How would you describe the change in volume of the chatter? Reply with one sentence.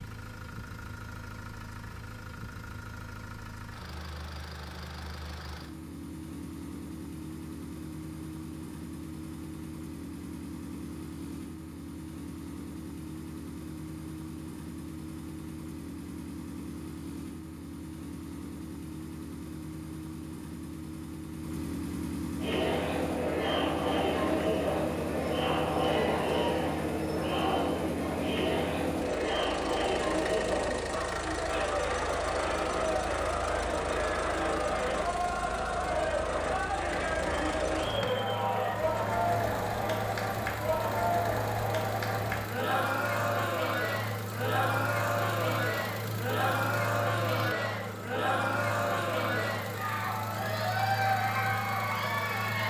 The volume of the chatter stays about the same.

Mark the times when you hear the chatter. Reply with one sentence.
You can hear the chatter from 22.4 to 52.6 s.